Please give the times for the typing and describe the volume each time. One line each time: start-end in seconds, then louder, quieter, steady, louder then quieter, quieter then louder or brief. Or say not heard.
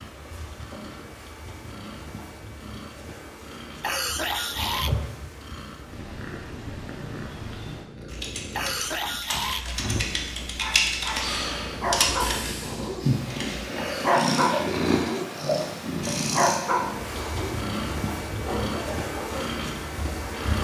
8.1-13.6 louder then quieter.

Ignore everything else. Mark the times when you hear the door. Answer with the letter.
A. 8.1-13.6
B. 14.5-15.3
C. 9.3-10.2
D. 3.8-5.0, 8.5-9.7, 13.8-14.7
C.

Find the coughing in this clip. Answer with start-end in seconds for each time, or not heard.
3.8-5.0, 8.5-9.7, 13.8-14.7.